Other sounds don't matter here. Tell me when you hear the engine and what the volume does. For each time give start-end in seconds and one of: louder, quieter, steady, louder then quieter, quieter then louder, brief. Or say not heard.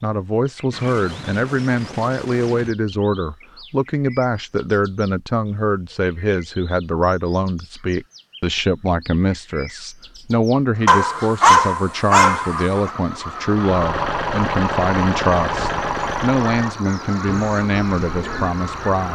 13.4-19.0 quieter.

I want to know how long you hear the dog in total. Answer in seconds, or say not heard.
2 s.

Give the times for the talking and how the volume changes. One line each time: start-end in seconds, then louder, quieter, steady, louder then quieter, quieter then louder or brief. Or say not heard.
0.0-19.0 steady.